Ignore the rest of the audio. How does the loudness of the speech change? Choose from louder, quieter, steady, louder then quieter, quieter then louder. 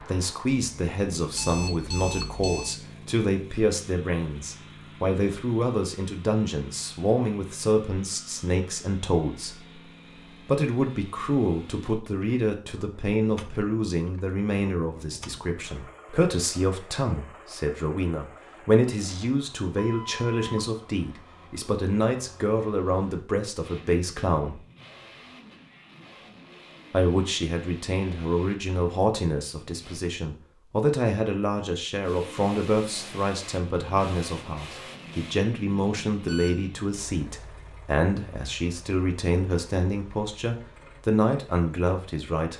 steady.